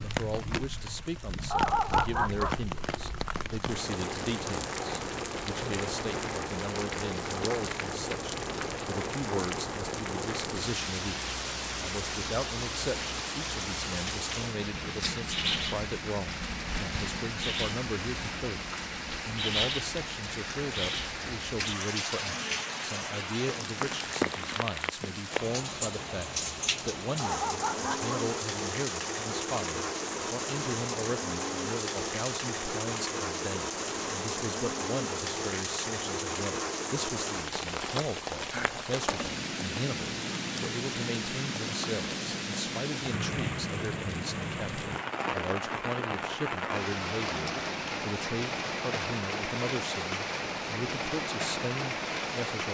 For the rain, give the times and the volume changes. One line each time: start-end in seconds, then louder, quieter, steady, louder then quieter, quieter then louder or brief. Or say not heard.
0.0-52.7 steady.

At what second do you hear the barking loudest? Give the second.
2 s.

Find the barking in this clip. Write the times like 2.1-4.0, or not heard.
1.5-2.5, 27.1-28.2.